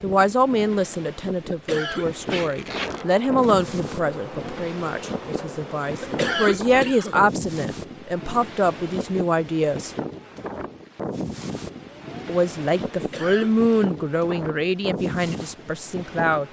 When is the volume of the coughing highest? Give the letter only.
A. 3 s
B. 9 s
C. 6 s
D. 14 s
C.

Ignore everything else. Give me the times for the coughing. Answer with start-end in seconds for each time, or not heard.
1.5-2.1, 6.0-7.2, 12.9-13.6.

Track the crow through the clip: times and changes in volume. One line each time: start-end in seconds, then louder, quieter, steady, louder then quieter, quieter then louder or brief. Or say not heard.
not heard.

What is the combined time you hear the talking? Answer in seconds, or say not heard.
14 s.